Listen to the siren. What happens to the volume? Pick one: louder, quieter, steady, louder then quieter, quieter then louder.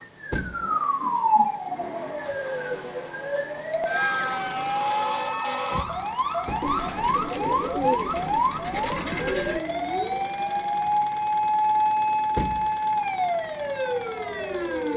steady.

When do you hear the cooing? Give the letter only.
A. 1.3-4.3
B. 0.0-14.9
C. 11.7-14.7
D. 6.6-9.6
D.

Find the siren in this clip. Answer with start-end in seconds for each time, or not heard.
0.0-14.9.